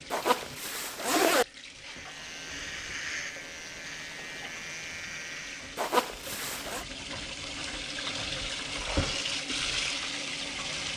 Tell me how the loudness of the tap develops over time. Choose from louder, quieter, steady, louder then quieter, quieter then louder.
louder.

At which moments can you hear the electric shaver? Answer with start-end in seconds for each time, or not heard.
1.8-5.8.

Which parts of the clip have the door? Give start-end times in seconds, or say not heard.
not heard.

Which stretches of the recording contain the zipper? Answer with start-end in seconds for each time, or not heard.
0.1-1.4, 5.8-6.8.